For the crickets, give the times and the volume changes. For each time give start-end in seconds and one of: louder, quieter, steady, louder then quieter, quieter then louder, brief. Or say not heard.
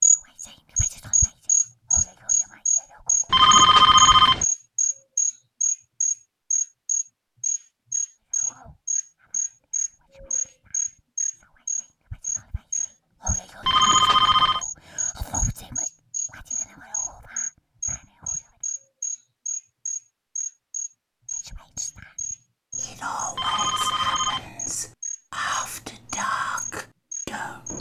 0.0-27.7 quieter.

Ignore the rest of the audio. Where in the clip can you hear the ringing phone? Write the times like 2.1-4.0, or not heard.
3.3-4.5, 13.6-14.6, 23.4-24.5.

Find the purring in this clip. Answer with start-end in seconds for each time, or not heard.
not heard.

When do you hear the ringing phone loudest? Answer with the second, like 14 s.
4 s.